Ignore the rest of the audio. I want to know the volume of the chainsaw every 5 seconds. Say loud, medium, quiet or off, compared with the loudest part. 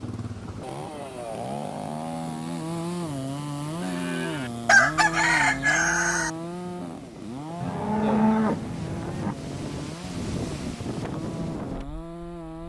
loud, loud, medium.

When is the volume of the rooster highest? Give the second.
5 s.